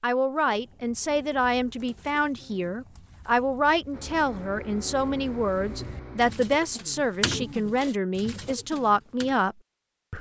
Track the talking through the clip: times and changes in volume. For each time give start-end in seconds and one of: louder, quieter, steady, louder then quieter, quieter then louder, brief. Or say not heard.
0.0-10.1 steady.